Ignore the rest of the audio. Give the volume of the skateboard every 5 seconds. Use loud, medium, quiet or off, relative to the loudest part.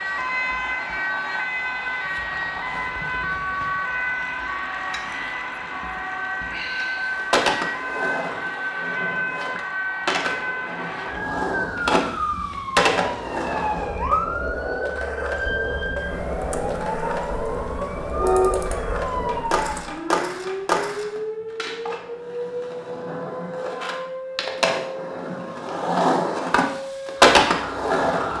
off, medium, medium, medium, medium, loud.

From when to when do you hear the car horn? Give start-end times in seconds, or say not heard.
18.2-19.1.